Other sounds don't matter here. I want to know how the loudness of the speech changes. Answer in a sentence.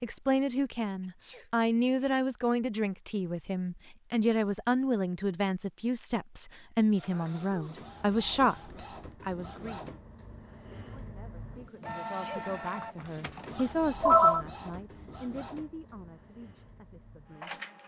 The volume of the speech goes down.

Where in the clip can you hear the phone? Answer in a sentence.
You can hear the phone from 13.6 to 14.4 s.